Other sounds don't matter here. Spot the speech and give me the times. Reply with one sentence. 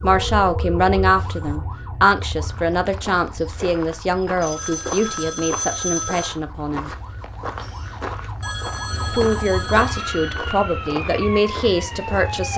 You can hear the speech from 0.0 to 6.9 s and from 9.1 to 12.5 s.